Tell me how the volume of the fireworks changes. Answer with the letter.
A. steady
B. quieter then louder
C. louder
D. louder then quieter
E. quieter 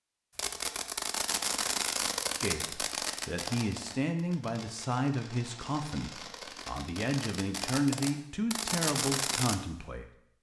B.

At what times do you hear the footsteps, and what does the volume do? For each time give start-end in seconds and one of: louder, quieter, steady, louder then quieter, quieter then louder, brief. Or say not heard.
not heard.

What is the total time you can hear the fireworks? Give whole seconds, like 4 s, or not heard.
9 s.